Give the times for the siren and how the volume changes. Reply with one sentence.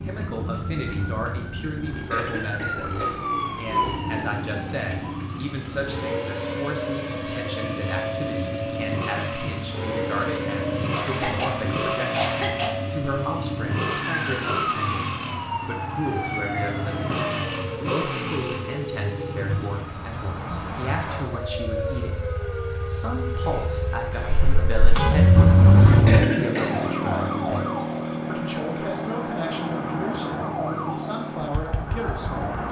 The siren can be heard from 0.0 to 32.6 s, at a steady volume.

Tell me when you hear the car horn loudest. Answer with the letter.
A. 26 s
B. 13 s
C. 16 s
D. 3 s
A.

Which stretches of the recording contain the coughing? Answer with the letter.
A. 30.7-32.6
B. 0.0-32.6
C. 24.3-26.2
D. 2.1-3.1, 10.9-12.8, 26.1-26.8
D.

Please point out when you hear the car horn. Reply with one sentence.
You can hear the car horn from 24.3 to 26.2 s.